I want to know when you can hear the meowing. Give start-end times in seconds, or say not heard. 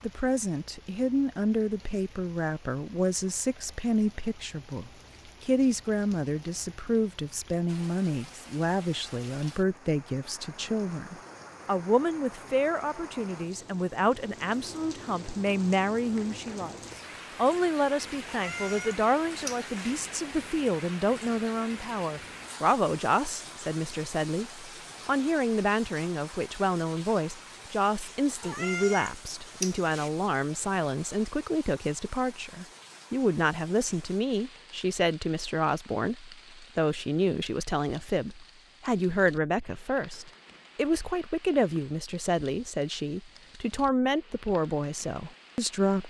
18.2-19.7, 28.4-30.1.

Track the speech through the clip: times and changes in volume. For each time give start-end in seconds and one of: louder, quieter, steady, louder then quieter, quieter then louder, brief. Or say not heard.
0.0-16.8 steady
17.4-46.0 steady.